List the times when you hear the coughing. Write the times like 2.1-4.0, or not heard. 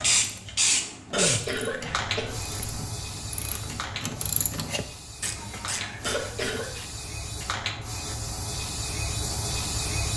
1.1-2.5, 6.0-6.7.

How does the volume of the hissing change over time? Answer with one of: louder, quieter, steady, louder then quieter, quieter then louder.
quieter then louder.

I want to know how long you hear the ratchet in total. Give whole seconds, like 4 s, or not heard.
7 s.